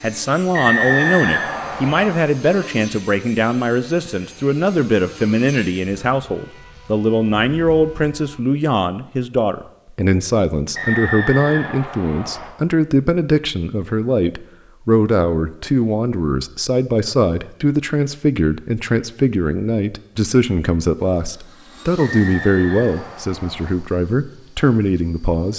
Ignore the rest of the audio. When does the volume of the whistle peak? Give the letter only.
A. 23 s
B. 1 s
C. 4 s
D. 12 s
B.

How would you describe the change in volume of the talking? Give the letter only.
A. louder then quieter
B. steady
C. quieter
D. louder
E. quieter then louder
B.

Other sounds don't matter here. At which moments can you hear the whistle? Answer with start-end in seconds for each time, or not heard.
0.5-2.2, 10.8-12.5, 21.9-23.8.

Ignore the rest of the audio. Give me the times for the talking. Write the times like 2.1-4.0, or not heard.
0.0-25.5.